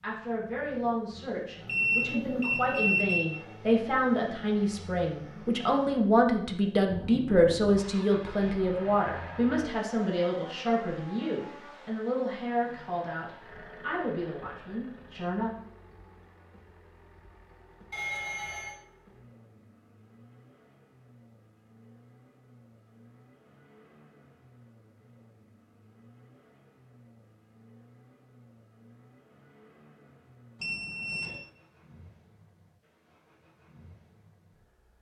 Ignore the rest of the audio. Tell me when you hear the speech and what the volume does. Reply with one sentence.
The speech can be heard from 0.0 to 15.5 s, getting louder then quieter.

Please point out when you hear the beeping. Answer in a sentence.
The beeping can be heard from 1.6 to 3.2 s, from 17.9 to 18.8 s and from 30.6 to 31.4 s.